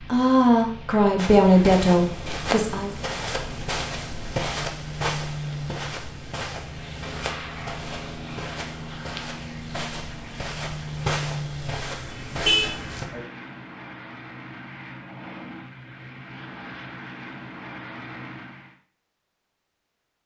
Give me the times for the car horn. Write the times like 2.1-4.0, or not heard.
12.1-13.2.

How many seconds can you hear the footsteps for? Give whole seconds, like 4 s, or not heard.
12 s.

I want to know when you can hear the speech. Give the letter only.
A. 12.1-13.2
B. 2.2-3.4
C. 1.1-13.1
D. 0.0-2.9
D.